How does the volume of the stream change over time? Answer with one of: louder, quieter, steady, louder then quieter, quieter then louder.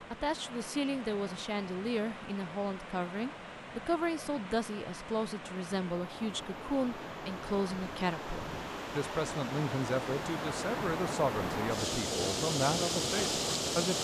louder.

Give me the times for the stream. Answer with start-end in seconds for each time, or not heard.
0.0-13.9.